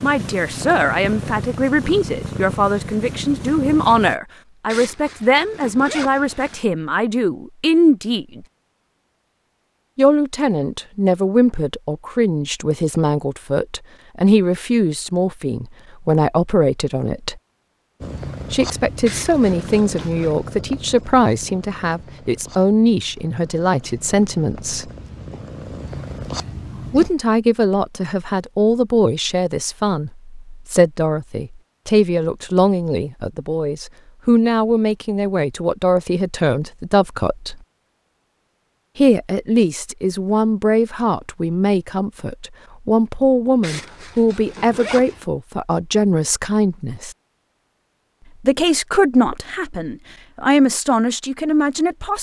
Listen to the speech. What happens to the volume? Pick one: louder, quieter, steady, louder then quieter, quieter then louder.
steady.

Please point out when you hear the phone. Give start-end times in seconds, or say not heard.
not heard.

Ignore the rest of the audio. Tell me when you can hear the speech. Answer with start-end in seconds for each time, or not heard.
0.0-8.4, 9.9-17.4, 18.5-24.9, 26.9-37.5, 39.0-47.1, 48.4-52.1.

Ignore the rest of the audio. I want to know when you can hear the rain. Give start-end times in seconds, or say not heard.
not heard.